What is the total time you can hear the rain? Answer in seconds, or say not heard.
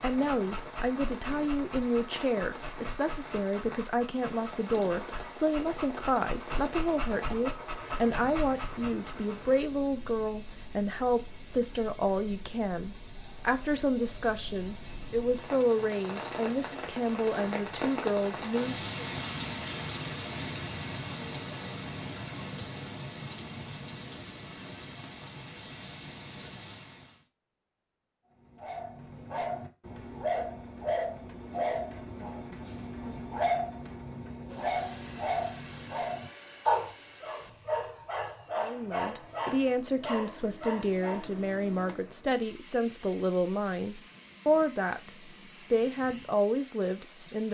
27 s.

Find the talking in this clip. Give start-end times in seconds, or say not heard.
0.0-19.1, 38.6-47.4.